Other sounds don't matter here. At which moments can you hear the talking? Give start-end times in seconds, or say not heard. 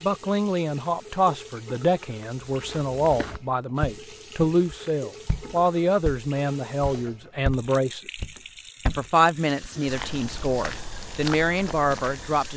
0.0-8.0, 8.8-12.5.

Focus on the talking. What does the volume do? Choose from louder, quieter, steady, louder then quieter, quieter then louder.
steady.